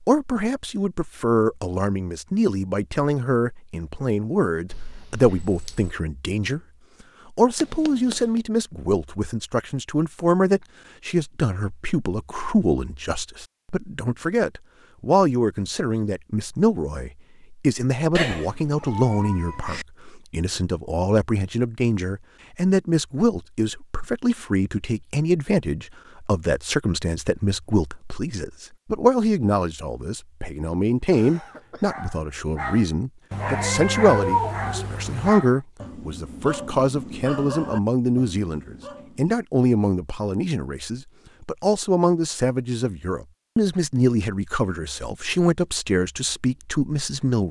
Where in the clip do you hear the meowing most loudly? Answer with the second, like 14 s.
34 s.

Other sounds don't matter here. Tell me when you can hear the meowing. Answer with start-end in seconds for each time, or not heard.
7.6-8.4, 18.1-19.9, 33.3-35.3.